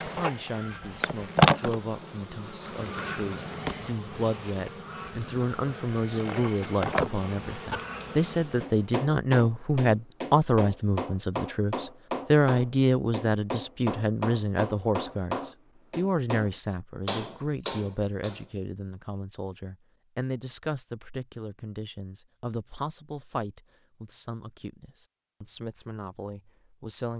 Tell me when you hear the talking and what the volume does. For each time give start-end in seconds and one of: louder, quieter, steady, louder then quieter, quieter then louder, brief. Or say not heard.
0.0-27.1 louder then quieter.